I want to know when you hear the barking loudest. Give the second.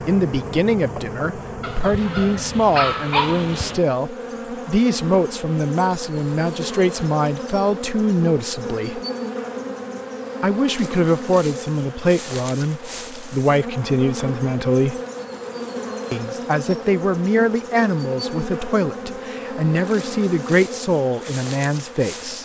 3 s.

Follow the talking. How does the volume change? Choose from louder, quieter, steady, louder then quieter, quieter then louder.
steady.